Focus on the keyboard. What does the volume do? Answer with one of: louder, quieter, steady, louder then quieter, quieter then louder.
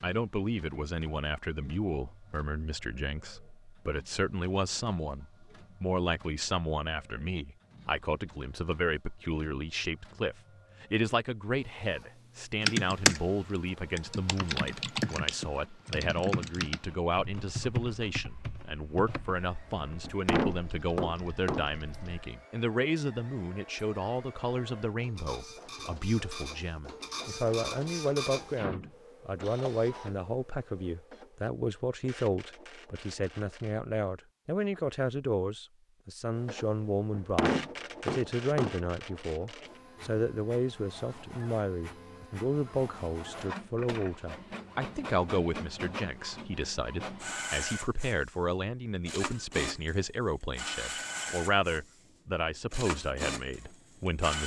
quieter.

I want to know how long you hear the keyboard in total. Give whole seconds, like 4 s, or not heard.
10 s.